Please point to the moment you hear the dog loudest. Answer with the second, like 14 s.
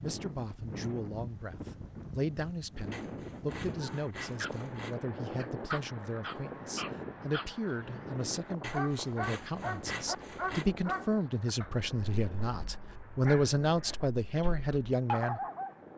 15 s.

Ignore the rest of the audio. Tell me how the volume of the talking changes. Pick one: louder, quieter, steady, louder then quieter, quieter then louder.
louder.